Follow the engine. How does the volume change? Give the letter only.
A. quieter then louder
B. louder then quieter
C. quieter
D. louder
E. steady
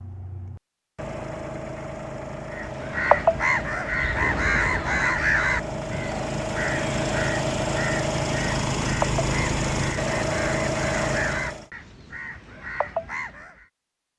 D.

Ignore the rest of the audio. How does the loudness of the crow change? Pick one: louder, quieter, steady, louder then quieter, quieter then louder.
quieter.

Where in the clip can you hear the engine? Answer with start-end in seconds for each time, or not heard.
0.0-11.7.